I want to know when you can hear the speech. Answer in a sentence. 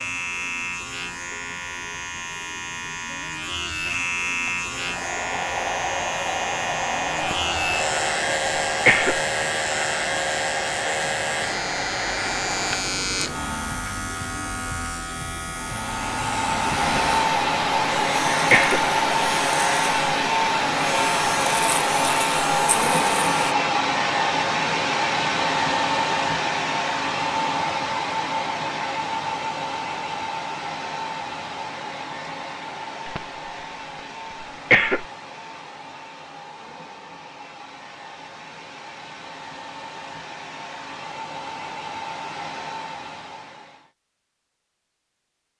The speech can't be heard in this clip.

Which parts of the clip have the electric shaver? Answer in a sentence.
The electric shaver can be heard from 0.0 to 23.6 s.